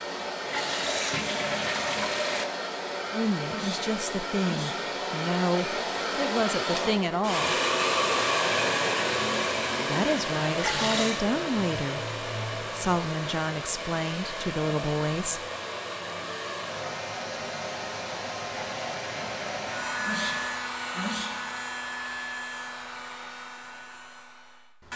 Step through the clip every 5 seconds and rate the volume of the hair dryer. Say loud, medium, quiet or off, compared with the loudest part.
medium, loud, medium, medium, medium.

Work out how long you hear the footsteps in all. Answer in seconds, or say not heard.
not heard.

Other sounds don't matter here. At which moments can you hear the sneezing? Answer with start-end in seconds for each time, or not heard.
3.5-4.9, 20.1-21.5.